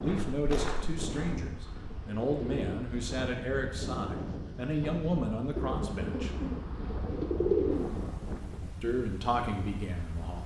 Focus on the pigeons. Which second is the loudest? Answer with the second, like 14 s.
8 s.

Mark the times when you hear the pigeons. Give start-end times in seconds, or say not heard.
0.6-2.9, 5.5-8.2.